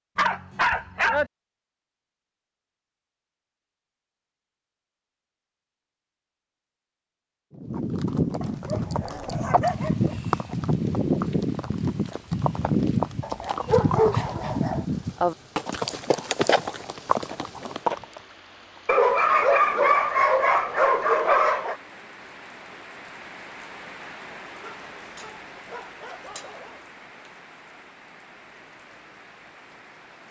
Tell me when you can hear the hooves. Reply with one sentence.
You can hear the hooves from 7.5 to 18.2 s.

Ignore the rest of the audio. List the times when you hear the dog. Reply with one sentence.
You can hear the dog from 0.1 to 1.3 s, from 8.4 to 10.2 s, from 13.2 to 14.8 s, from 18.9 to 21.8 s and from 24.6 to 26.8 s.